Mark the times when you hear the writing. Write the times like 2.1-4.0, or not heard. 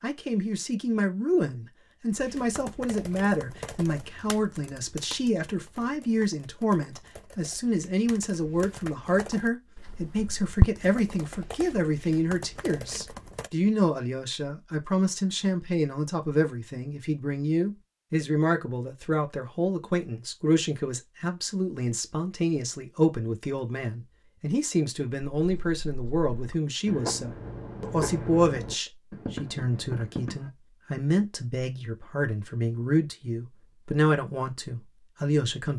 25.4-30.5.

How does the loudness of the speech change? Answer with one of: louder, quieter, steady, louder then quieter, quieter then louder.
steady.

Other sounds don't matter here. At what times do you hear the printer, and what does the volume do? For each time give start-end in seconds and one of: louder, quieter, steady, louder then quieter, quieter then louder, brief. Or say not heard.
not heard.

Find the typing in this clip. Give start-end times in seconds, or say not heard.
2.1-13.5.